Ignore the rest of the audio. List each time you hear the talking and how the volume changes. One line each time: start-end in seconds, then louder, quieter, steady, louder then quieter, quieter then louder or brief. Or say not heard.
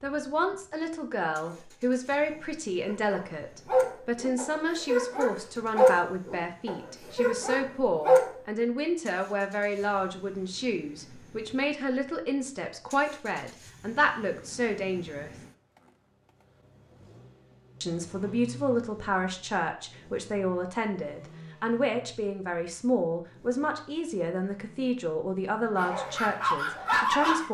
0.0-15.3 steady
17.8-27.4 steady.